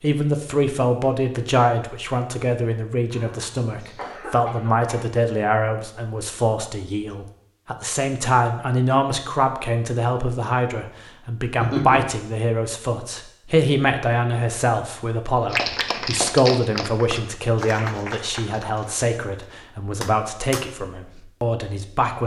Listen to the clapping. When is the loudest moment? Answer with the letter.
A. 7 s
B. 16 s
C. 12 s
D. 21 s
B.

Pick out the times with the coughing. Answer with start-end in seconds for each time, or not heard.
3.1-5.0, 11.6-12.1.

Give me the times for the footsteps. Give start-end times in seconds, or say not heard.
not heard.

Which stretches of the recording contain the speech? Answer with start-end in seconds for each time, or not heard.
0.0-22.2.